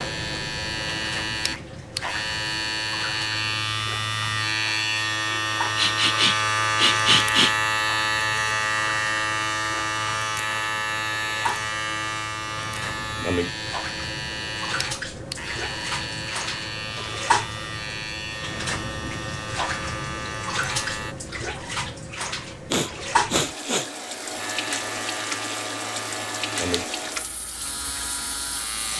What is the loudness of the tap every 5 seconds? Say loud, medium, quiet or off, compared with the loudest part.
medium, medium, medium, loud, loud, loud.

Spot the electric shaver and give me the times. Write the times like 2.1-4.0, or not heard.
0.0-21.1, 24.4-28.9.